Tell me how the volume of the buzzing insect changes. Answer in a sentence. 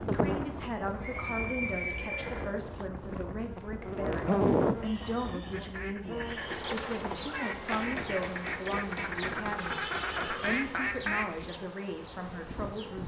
The loudness of the buzzing insect goes up, then down.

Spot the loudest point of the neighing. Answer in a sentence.
The loudest moment of the neighing is at 2 seconds.